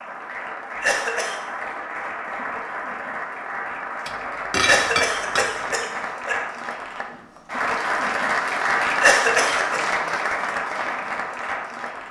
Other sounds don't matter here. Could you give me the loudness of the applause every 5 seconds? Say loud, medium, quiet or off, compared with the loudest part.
medium, loud, loud.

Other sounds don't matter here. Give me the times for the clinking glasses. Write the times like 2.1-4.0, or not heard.
4.0-5.8.